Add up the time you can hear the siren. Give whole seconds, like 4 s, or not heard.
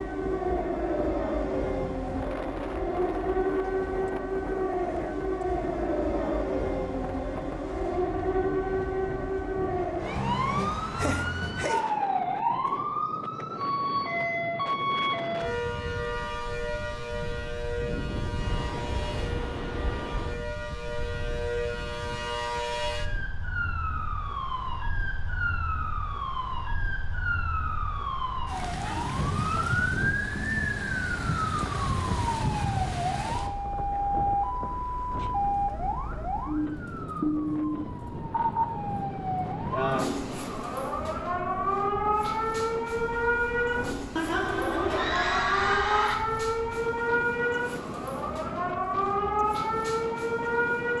51 s.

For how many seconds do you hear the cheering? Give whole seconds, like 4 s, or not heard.
2 s.